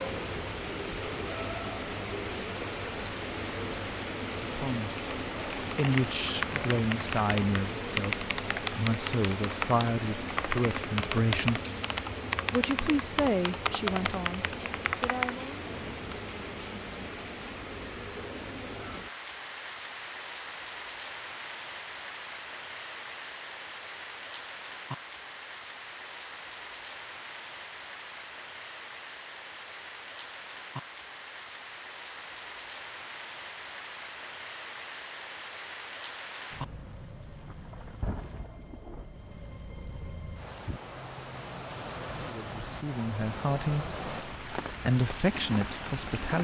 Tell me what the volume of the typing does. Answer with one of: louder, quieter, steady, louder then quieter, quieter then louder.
steady.